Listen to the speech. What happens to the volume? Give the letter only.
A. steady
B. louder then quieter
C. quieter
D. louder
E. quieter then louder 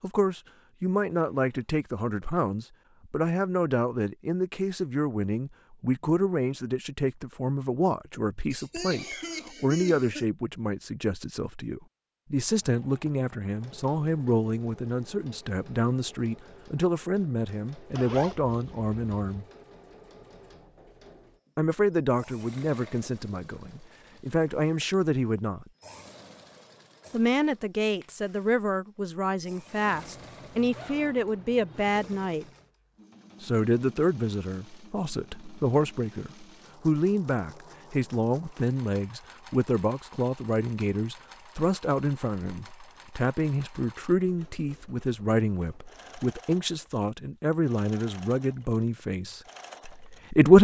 A.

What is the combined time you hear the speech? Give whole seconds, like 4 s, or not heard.
46 s.